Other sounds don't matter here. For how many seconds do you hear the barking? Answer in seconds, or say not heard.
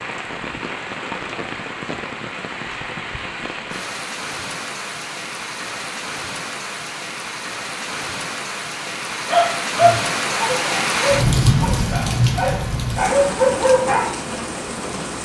5 s.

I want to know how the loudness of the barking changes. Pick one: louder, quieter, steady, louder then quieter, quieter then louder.
quieter then louder.